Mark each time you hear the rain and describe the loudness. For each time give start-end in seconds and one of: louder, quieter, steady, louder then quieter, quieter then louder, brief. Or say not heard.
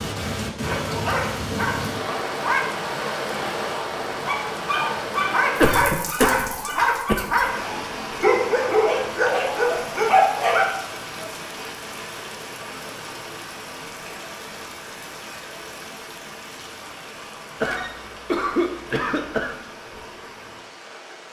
0.0-21.2 quieter.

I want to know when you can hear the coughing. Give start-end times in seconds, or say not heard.
5.5-7.3, 17.6-19.6.